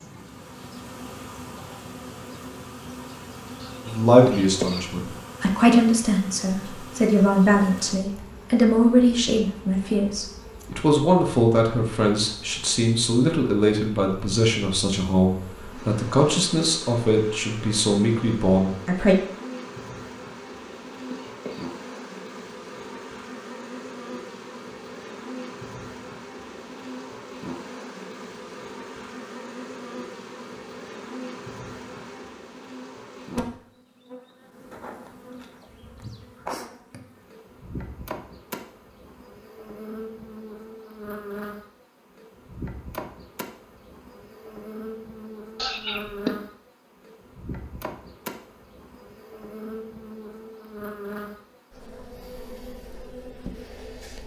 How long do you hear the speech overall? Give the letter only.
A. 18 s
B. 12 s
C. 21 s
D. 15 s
D.